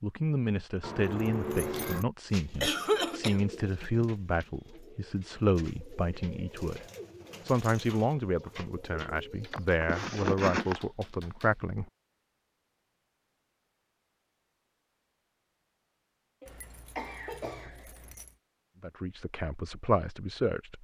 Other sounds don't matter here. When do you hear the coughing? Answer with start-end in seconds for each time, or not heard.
2.6-3.4, 9.5-10.8, 16.4-17.8.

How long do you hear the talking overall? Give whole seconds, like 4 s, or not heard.
13 s.